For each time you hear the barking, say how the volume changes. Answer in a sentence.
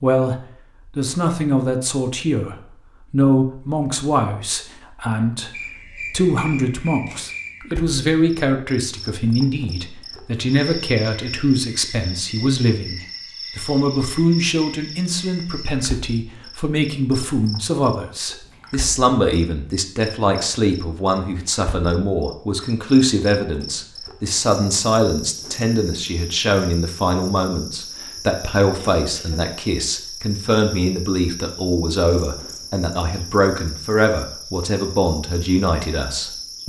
You can't hear the barking here.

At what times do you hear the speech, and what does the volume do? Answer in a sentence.
You can hear the speech from 0.0 to 36.6 s, at a steady volume.